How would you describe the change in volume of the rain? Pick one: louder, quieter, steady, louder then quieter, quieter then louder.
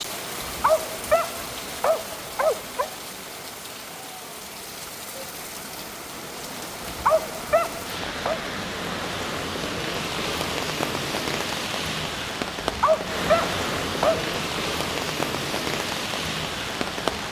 louder.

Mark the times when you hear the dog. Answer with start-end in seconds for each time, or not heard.
0.4-2.9, 6.8-8.4, 12.6-14.2.